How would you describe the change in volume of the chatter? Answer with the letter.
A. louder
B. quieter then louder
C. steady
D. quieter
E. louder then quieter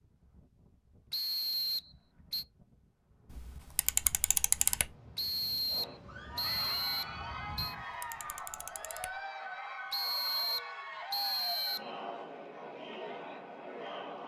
C.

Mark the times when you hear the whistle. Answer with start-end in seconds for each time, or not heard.
1.1-2.5, 5.2-7.8, 9.9-11.9.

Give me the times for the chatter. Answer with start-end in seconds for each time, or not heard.
5.7-14.2.